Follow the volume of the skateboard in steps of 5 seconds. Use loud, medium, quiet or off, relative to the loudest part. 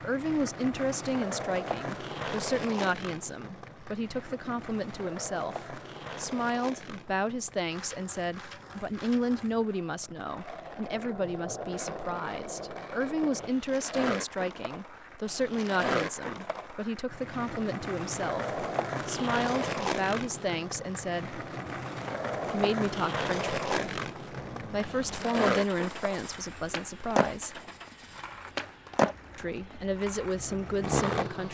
medium, medium, medium, loud, loud, loud, loud.